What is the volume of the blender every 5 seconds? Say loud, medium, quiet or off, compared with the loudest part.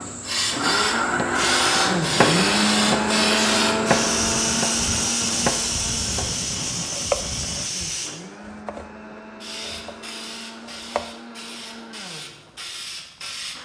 loud, quiet, quiet.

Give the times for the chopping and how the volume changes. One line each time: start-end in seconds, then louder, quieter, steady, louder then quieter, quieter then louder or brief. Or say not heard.
0.5-9.9 quieter
10.6-11.2 brief.